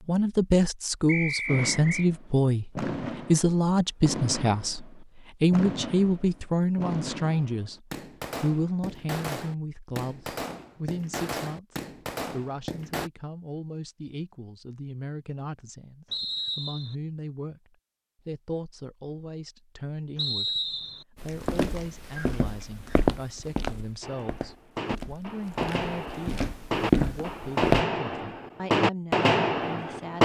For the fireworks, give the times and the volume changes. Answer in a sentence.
You can hear the fireworks from 1.4 to 13.1 s, at a steady volume; and from 24.0 to 30.1 s, getting louder.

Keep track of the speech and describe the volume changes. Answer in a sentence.
The loudness of the speech goes down.